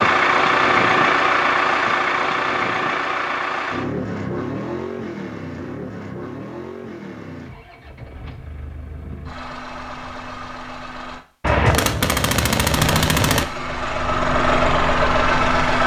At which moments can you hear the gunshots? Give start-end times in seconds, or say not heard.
11.4-13.4.